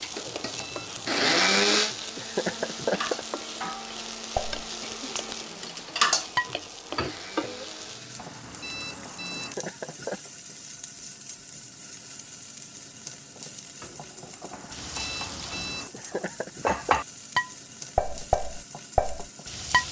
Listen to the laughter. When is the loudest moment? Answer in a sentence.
The loudest moment of the laughter is at 3 seconds.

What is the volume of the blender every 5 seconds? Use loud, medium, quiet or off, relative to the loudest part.
loud, quiet, off, off.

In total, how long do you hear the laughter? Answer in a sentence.
The laughter can be heard for 4 seconds in total.